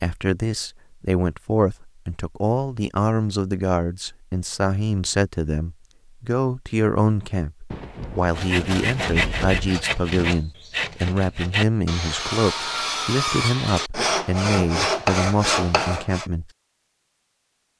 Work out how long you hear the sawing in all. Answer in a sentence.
The sawing can be heard for 8 seconds in total.